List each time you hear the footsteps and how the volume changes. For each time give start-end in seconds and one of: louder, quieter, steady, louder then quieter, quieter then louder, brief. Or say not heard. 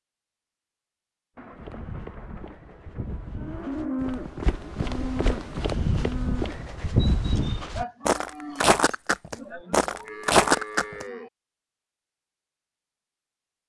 1.5-11.1 louder.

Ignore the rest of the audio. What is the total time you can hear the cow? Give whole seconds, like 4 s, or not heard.
8 s.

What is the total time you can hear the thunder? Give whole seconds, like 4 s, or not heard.
2 s.